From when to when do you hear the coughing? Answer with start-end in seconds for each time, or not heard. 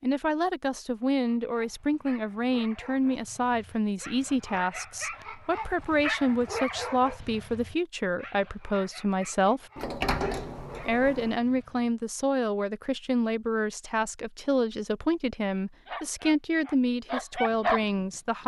not heard.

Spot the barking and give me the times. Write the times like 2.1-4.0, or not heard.
1.4-11.9, 15.8-18.1.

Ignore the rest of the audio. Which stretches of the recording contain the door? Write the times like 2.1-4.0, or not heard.
9.8-11.3.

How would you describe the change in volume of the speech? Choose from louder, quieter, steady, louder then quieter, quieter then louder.
steady.